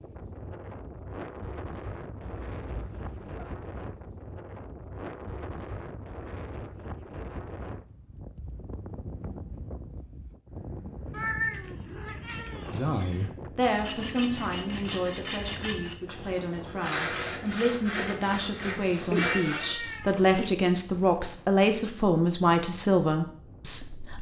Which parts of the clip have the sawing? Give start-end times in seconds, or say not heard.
13.8-19.8.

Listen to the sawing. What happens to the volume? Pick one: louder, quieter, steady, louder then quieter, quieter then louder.
steady.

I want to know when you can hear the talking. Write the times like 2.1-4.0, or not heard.
12.7-24.1.